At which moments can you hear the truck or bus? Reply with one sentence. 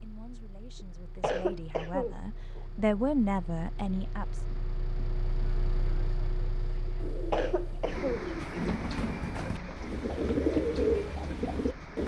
The truck or bus can be heard from 0.0 to 12.0 s.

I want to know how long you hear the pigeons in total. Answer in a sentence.
You can hear the pigeons for 5 seconds altogether.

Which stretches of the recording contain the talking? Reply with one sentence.
The talking can be heard from 0.0 to 4.4 s.